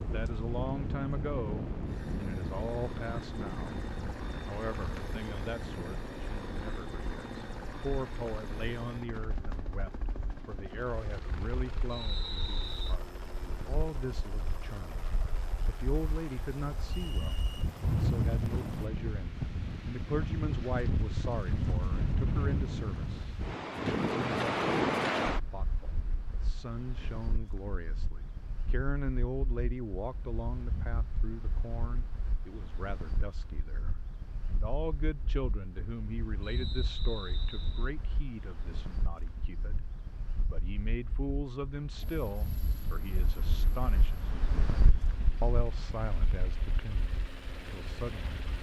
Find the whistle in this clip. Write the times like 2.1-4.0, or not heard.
11.9-12.9, 17.0-17.6, 36.4-37.9.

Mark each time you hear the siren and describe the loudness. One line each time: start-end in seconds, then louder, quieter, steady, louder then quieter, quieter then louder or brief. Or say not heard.
not heard.